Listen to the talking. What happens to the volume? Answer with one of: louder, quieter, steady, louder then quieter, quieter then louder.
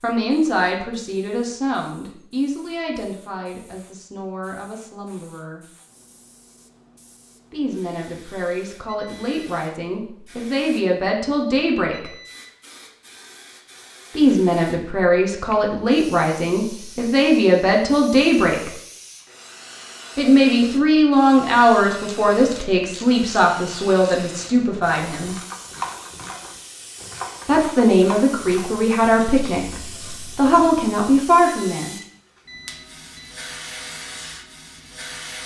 louder.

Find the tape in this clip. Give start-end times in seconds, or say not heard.
not heard.